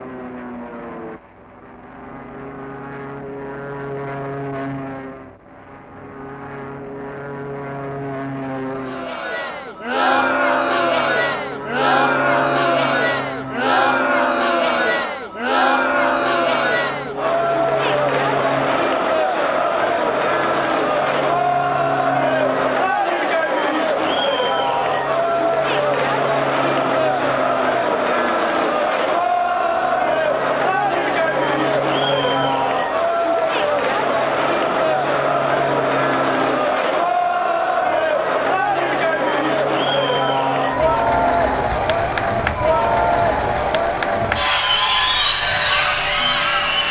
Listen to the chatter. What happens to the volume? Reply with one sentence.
The volume of the chatter stays about the same.